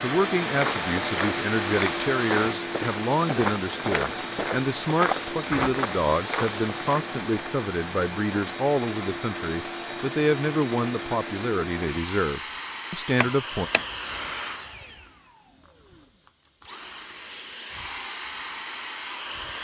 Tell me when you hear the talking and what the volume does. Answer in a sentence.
The talking can be heard from 0.0 to 13.7 s, at a steady volume.